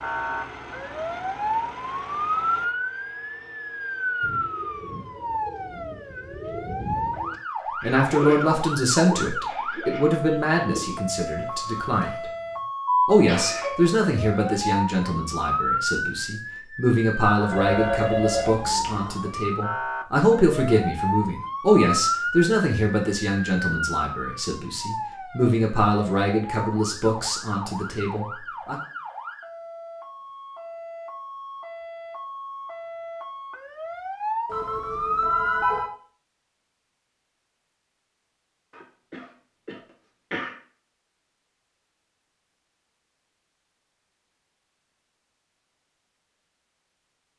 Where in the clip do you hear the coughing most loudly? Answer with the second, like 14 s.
13 s.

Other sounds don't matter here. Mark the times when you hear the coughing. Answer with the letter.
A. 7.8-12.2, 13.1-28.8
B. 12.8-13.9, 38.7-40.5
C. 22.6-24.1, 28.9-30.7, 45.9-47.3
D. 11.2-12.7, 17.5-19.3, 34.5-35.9
B.